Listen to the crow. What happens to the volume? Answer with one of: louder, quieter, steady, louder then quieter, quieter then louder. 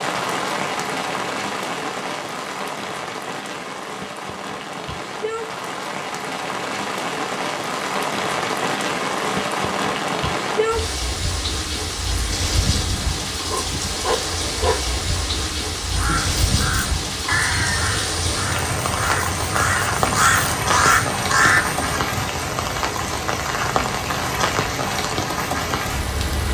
louder.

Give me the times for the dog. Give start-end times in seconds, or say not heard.
13.0-14.8.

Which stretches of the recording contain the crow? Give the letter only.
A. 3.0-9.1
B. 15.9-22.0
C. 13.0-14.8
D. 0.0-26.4
B.